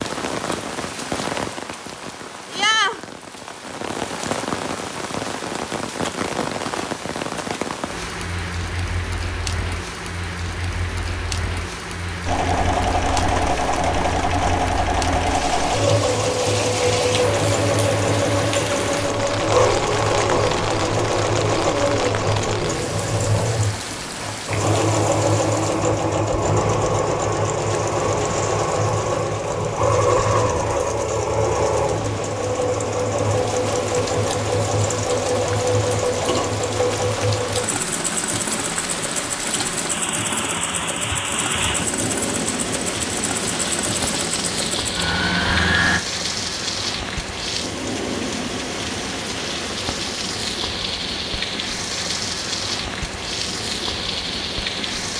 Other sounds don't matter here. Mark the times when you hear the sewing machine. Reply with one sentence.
You can hear the sewing machine from 12.2 to 46.0 s.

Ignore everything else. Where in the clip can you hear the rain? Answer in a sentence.
You can hear the rain from 0.0 to 55.1 s.